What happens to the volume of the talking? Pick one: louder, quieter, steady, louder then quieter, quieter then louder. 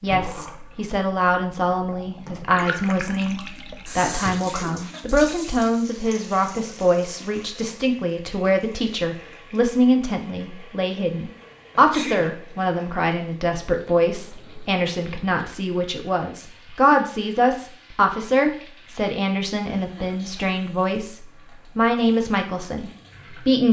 steady.